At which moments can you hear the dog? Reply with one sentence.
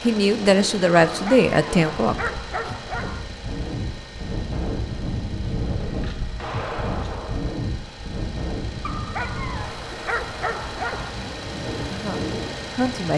The dog can be heard from 1.1 to 3.2 s and from 8.8 to 11.2 s.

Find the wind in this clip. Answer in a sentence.
You can hear the wind from 0.0 to 13.1 s.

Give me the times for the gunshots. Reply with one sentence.
You can hear the gunshots from 5.8 to 7.5 s.